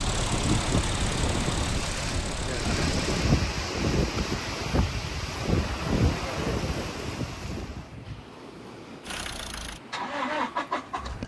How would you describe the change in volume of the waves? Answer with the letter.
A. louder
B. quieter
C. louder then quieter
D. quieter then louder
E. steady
B.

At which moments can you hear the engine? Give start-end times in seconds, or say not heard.
0.0-3.2, 9.0-11.2.